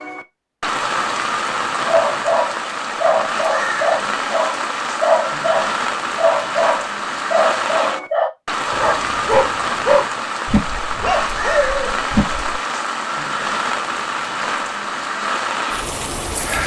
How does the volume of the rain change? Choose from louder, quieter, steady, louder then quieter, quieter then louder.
steady.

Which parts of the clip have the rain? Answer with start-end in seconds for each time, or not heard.
0.0-16.6.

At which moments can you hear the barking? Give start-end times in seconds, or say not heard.
1.9-12.6.